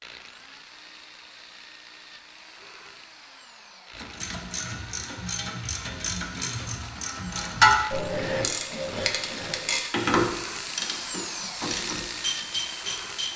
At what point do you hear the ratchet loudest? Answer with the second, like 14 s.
8 s.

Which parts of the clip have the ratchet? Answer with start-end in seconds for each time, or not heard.
3.9-13.3.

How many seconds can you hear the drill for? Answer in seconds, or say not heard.
13 s.